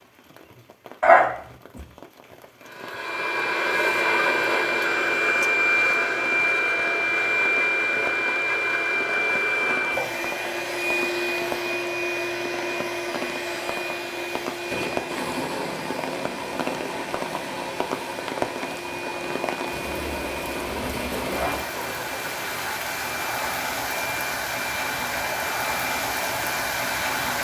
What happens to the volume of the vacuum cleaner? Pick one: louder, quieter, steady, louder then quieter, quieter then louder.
quieter.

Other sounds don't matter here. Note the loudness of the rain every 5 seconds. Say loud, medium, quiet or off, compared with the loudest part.
quiet, quiet, medium, medium, loud, loud.